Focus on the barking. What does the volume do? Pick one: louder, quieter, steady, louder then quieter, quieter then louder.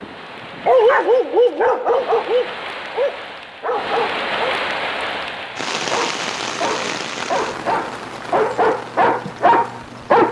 quieter then louder.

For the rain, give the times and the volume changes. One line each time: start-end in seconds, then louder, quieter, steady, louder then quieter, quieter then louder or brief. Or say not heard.
0.0-10.2 louder then quieter.